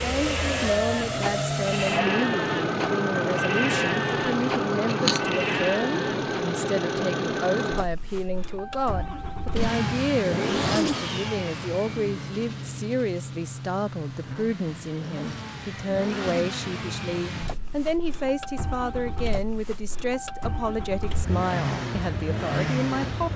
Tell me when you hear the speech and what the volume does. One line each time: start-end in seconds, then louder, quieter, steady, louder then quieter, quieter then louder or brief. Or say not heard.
0.0-23.3 steady.